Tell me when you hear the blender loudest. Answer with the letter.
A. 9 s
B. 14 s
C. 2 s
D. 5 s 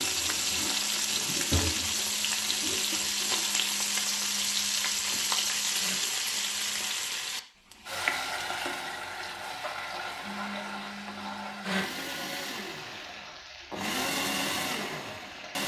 B.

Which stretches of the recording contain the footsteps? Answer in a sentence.
The footsteps can't be heard in this clip.